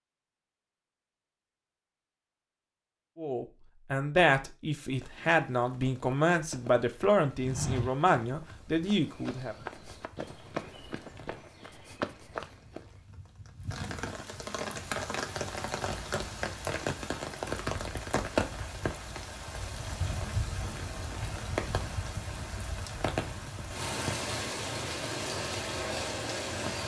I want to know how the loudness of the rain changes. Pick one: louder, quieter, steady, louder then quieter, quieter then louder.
louder.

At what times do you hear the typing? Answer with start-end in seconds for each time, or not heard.
not heard.